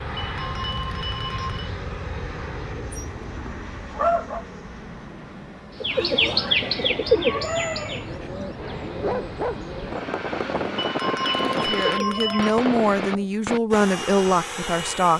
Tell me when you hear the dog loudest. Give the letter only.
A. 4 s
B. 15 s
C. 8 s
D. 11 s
A.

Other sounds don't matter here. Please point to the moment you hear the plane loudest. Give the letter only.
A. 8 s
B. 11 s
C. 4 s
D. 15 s
B.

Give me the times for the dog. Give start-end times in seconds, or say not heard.
2.9-4.4, 8.6-9.8.